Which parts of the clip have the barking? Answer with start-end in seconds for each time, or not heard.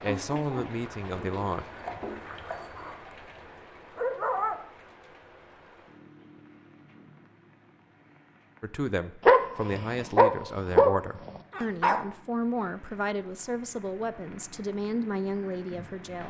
0.0-4.5, 9.2-12.1.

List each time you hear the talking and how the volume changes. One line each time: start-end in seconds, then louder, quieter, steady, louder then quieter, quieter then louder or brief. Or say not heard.
0.0-1.6 brief
8.6-16.2 steady.